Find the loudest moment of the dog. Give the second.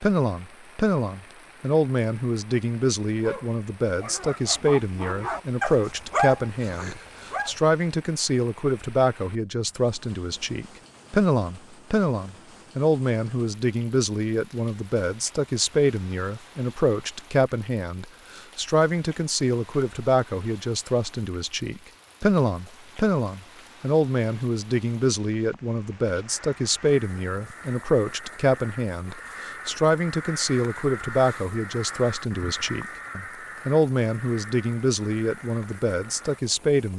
6 s.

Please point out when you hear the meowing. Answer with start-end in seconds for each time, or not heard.
not heard.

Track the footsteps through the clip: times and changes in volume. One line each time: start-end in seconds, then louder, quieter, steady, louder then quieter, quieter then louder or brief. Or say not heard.
not heard.